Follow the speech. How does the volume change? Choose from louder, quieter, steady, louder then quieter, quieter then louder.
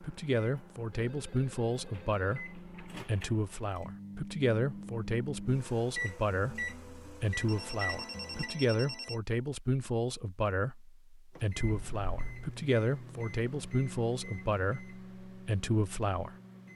steady.